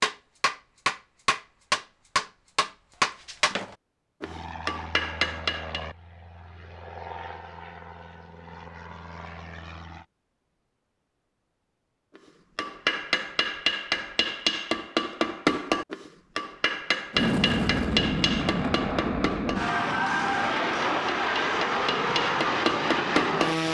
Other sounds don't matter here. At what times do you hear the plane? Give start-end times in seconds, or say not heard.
4.2-10.1, 17.1-23.6.